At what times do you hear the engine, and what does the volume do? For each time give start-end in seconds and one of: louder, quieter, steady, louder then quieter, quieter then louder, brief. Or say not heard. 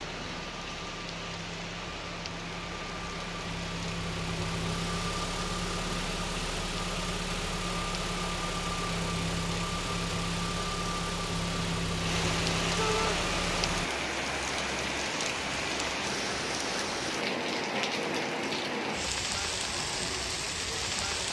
0.0-13.9 louder.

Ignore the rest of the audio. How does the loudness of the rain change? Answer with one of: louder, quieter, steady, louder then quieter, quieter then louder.
louder.